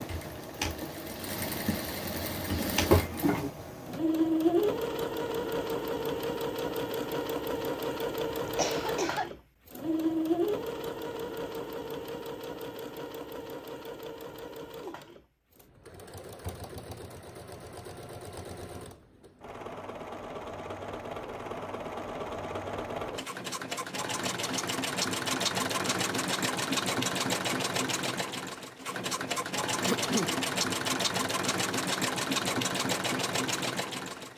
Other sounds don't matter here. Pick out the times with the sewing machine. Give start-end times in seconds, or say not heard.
0.0-34.3.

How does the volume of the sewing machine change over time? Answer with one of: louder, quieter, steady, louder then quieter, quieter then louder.
quieter then louder.